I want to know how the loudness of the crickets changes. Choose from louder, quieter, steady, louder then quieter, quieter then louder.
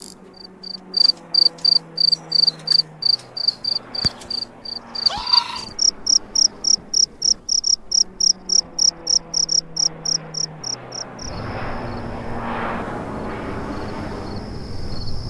quieter.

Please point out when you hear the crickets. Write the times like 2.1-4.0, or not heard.
0.0-15.2.